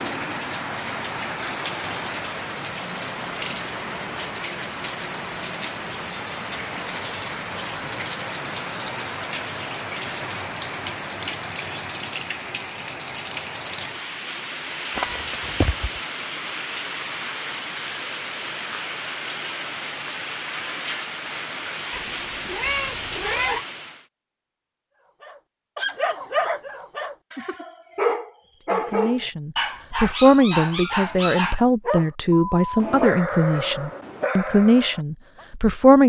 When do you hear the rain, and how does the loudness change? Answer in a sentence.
You can hear the rain from 0.0 to 24.1 s, at a steady volume.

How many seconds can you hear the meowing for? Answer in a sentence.
You can hear the meowing for 3 seconds altogether.